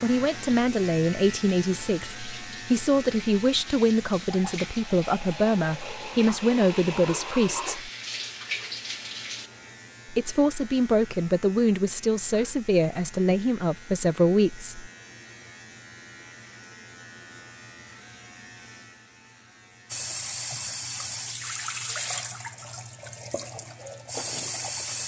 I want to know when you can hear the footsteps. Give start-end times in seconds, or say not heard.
not heard.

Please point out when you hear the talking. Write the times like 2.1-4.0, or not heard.
0.0-7.9, 10.1-14.9.